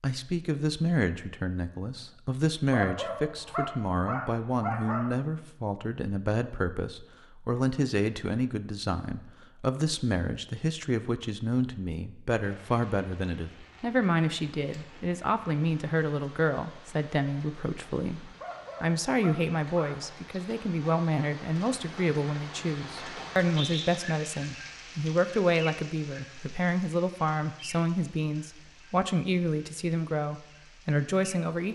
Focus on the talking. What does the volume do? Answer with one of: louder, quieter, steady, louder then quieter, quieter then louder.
steady.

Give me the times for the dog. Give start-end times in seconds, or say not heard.
2.7-5.2, 18.4-20.1.